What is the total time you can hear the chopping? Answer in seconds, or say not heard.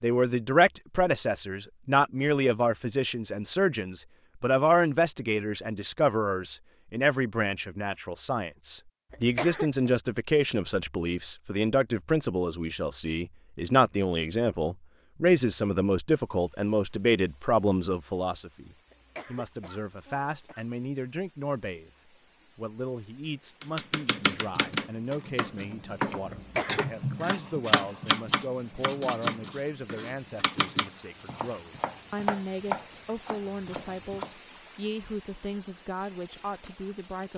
11 s.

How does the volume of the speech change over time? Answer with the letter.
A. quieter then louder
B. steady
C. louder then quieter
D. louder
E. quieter
E.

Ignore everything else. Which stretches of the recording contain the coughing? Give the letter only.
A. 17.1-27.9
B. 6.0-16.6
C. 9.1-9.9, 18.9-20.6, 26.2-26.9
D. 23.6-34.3
C.